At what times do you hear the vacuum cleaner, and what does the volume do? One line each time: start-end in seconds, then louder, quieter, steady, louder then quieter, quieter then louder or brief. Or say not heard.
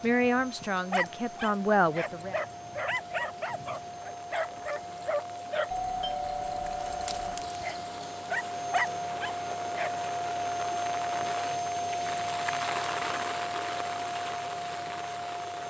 0.0-15.6 louder.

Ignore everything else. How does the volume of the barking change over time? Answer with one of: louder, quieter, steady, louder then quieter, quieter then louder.
quieter then louder.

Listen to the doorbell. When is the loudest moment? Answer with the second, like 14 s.
6 s.